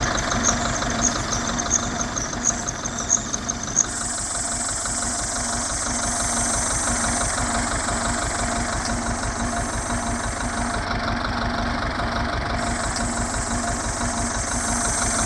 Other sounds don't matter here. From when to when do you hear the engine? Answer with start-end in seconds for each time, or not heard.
0.0-15.2.